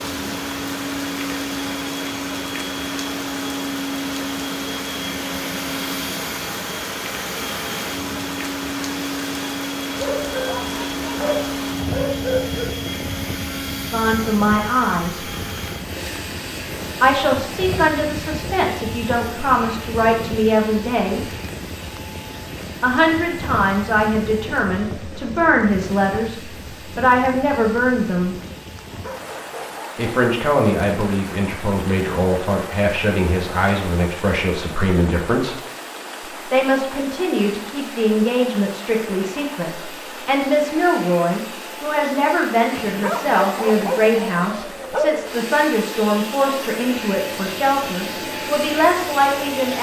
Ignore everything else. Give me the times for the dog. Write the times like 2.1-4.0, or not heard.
9.9-12.7, 28.9-30.1, 42.7-45.2.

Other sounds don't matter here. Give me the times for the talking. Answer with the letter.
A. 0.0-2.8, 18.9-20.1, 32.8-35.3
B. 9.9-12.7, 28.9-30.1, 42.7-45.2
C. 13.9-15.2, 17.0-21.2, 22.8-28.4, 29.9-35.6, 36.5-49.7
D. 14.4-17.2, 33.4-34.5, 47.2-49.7
C.